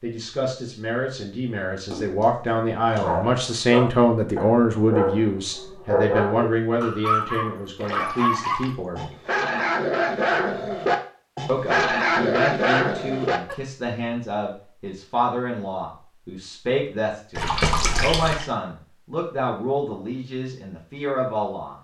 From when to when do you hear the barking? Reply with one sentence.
You can hear the barking from 3.0 to 13.6 s.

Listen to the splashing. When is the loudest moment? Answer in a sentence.
The loudest moment of the splashing is at 18 seconds.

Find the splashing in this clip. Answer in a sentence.
You can hear the splashing from 1.9 to 3.8 s, from 7.8 to 9.2 s and from 17.4 to 18.4 s.